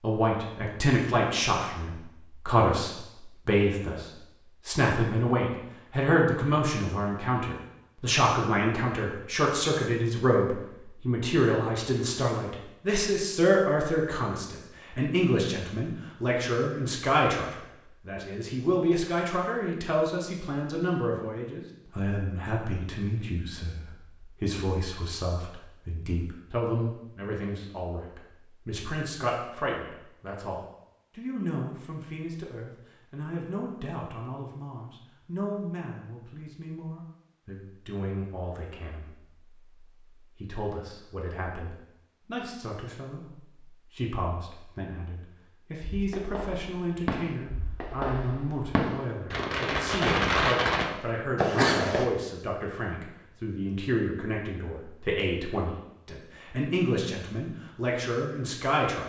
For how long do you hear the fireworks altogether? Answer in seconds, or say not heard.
6 s.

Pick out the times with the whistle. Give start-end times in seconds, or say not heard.
not heard.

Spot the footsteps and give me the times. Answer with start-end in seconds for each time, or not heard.
not heard.